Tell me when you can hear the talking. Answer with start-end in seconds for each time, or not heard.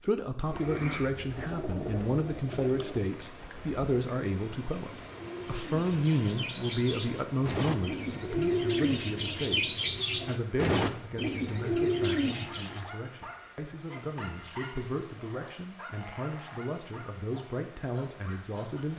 0.0-18.9.